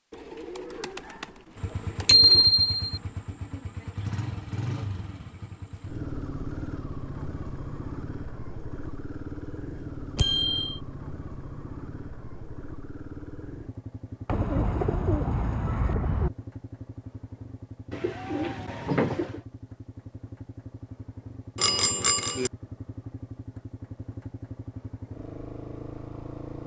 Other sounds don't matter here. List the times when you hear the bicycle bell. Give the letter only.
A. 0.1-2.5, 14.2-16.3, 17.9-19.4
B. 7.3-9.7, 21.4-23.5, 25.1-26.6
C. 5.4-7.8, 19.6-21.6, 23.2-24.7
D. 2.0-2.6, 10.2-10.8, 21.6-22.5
D.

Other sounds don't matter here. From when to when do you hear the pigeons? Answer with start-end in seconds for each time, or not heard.
0.1-2.5, 14.2-16.3, 17.9-19.4.